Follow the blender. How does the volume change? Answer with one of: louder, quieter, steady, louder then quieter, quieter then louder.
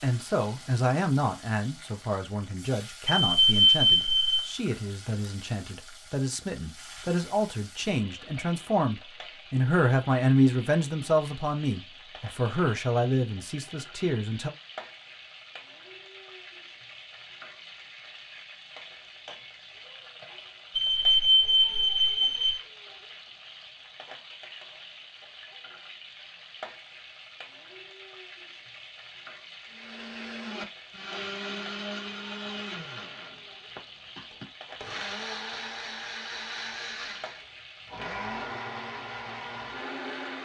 steady.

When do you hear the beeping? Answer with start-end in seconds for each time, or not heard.
3.2-4.5, 20.8-22.6.